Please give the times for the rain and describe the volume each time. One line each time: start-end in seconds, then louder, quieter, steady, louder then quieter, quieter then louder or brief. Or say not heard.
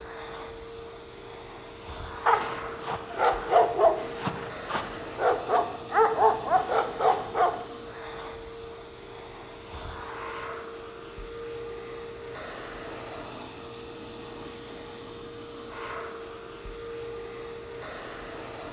not heard.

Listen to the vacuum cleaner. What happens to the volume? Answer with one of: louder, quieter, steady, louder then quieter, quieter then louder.
steady.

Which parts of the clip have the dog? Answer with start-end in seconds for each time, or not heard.
2.2-7.7.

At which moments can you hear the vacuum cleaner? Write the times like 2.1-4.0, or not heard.
0.0-18.6.